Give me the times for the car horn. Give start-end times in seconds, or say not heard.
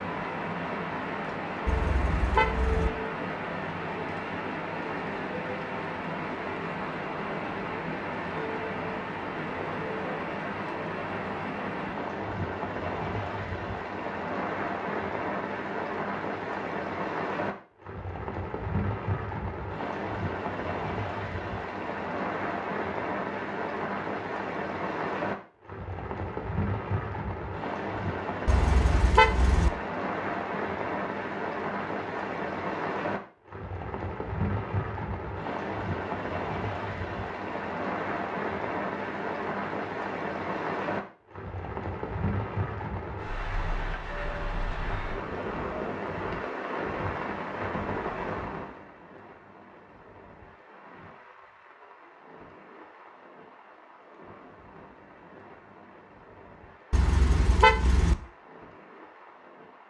1.6-2.9, 28.4-29.7, 56.9-58.1.